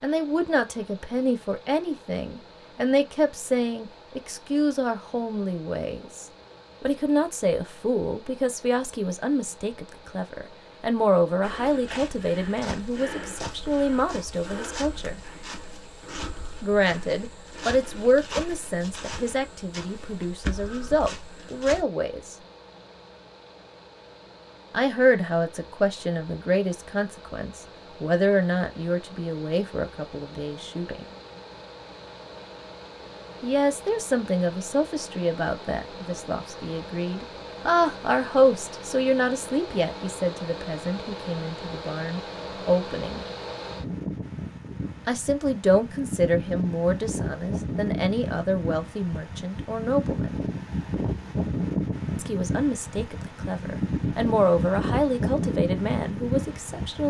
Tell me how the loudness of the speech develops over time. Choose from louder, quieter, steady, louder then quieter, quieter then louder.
steady.